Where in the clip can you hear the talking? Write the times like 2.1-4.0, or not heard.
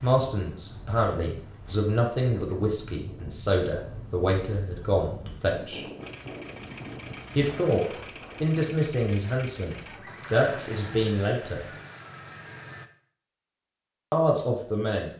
0.0-5.8, 7.3-11.7, 14.1-15.1.